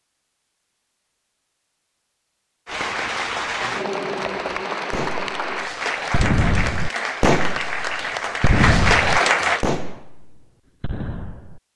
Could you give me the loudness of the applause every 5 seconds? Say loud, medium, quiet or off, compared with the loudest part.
loud, loud, off.